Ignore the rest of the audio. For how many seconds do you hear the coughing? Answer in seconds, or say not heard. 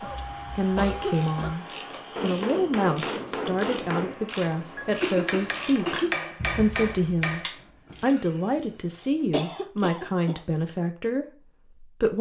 4 s.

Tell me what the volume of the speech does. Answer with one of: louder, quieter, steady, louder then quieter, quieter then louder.
steady.